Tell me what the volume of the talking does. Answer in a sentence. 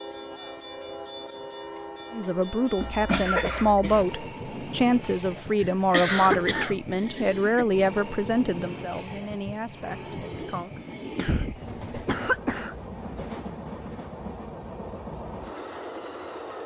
The loudness of the talking goes down.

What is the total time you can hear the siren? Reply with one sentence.
You can't hear the siren here.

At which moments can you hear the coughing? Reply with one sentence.
The coughing can be heard from 2.8 to 4.0 s, from 5.6 to 7.7 s and from 11.2 to 12.8 s.